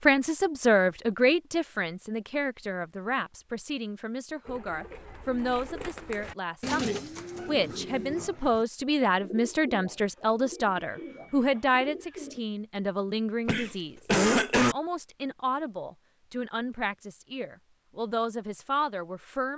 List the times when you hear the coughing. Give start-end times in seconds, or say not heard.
13.4-14.8.